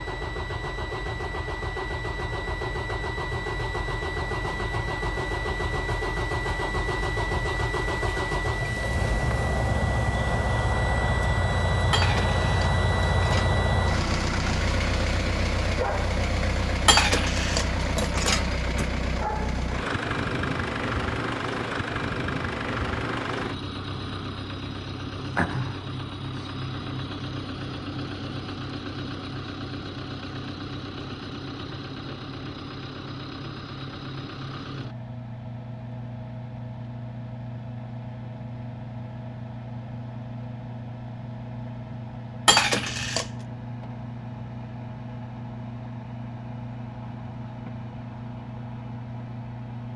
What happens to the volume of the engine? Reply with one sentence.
The loudness of the engine goes down.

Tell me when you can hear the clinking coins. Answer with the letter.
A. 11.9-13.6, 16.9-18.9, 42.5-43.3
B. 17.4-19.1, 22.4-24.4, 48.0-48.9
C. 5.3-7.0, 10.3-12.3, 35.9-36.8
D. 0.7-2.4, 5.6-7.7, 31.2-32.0
A.